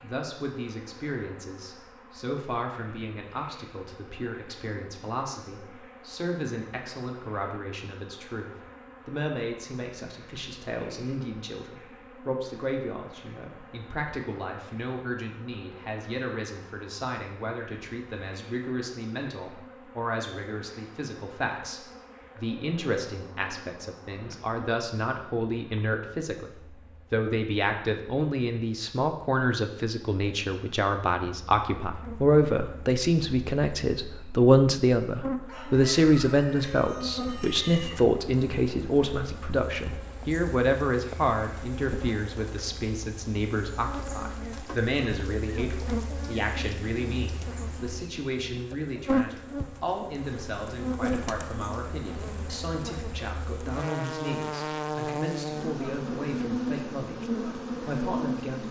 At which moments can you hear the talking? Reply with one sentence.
The talking can be heard from 0.0 to 26.5 s and from 27.1 to 58.6 s.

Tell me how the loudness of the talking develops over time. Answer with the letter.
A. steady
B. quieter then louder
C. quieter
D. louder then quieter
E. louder
D.